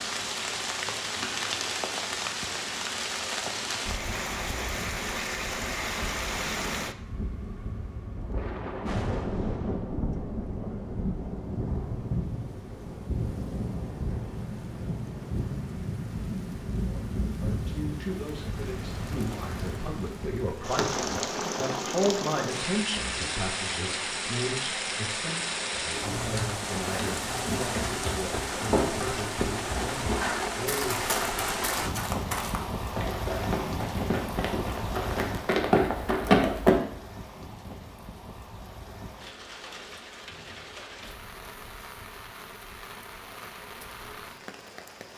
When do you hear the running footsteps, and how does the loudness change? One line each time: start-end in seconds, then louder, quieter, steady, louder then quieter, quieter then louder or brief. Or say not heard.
26.1-36.8 louder.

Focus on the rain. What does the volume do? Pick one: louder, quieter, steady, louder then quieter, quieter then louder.
quieter.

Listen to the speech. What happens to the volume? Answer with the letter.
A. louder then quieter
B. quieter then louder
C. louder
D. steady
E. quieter
A.